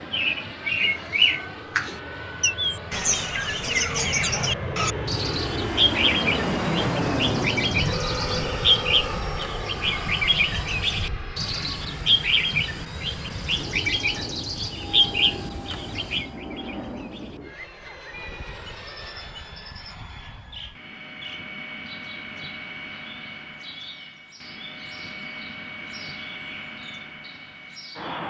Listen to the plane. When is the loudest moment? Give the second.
7 s.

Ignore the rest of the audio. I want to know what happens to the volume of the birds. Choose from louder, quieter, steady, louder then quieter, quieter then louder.
quieter.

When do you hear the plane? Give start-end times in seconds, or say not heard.
0.0-28.2.